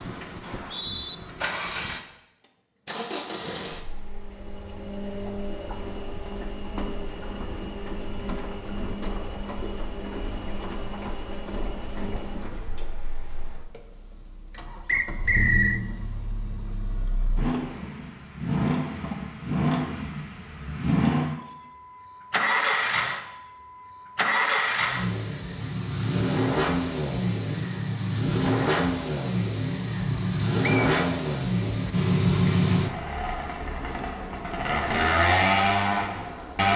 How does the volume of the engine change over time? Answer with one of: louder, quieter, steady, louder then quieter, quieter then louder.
louder.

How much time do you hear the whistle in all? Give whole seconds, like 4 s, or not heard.
3 s.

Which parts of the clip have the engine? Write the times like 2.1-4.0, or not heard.
0.0-36.7.